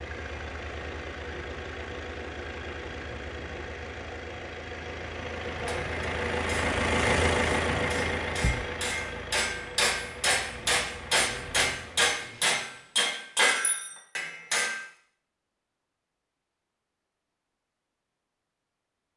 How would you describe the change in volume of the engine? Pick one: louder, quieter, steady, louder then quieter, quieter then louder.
louder then quieter.